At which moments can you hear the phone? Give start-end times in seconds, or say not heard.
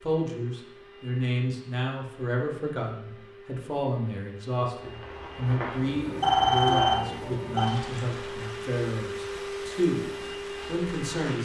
6.2-7.8.